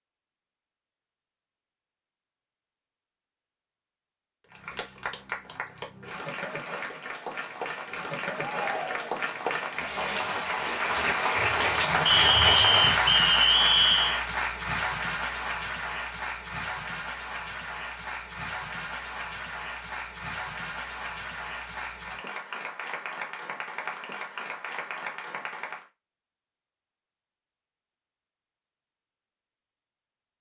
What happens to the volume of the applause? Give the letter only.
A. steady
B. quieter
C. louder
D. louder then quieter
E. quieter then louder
D.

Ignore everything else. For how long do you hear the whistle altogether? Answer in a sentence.
You can hear the whistle for 2 seconds altogether.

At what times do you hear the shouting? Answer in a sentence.
You can hear the shouting from 8.3 to 9.2 s.